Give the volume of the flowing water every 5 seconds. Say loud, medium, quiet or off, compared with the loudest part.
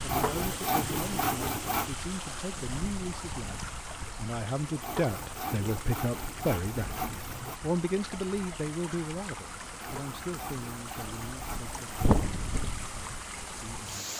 loud, medium, loud.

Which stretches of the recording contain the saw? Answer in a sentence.
You can hear the saw from 0.1 to 1.9 s, from 4.8 to 7.6 s and from 9.8 to 12.2 s.